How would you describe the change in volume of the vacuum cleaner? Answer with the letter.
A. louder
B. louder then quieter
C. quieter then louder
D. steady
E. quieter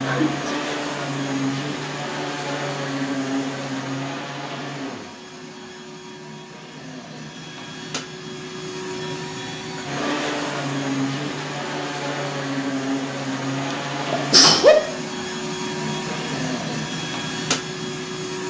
C.